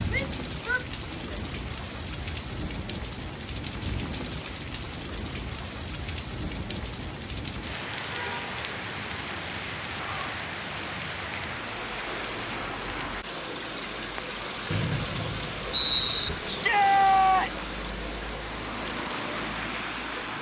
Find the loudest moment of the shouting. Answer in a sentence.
The volume of the shouting peaks at 17 seconds.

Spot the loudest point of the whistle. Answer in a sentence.
The volume of the whistle peaks at 16 seconds.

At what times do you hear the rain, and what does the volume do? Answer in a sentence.
The rain can be heard from 0.0 to 20.3 s, at a steady volume.